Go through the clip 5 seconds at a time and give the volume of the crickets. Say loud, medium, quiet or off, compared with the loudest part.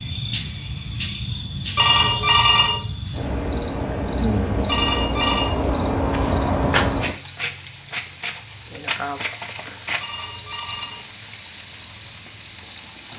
medium, loud, loud.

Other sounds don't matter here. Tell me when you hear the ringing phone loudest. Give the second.
2 s.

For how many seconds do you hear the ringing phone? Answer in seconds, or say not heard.
3 s.